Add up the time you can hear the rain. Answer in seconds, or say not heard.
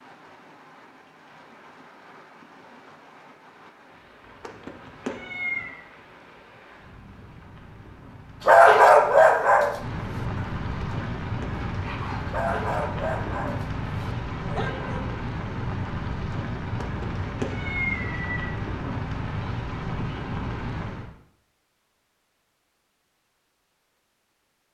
21 s.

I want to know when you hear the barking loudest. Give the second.
9 s.